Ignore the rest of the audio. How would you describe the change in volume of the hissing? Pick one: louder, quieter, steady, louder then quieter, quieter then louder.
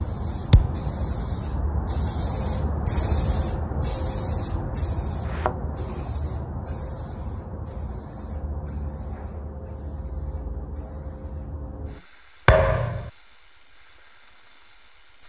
quieter.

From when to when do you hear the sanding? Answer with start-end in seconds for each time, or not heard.
not heard.